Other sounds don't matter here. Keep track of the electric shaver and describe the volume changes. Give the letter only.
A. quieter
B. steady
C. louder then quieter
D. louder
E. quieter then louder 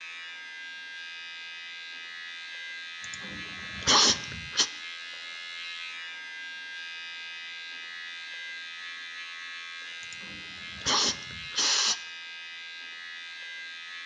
B.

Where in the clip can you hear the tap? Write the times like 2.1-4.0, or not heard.
not heard.